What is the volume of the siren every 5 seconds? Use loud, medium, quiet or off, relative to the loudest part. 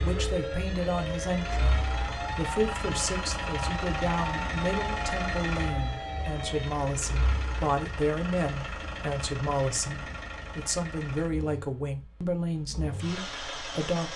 loud, loud, off.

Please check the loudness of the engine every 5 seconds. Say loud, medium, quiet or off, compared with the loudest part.
loud, loud, medium.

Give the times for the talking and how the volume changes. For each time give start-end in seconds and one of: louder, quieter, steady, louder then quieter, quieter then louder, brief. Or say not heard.
0.0-14.1 steady.